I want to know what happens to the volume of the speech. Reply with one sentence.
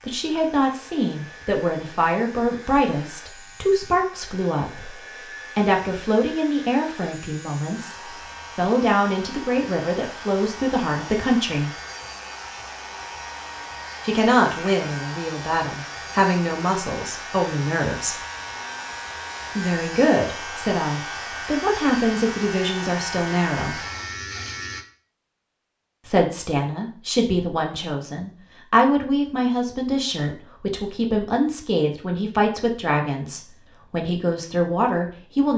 The volume of the speech stays about the same.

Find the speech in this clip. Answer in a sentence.
You can hear the speech from 0.0 to 11.8 s, from 14.0 to 18.1 s, from 19.6 to 23.8 s and from 26.1 to 35.5 s.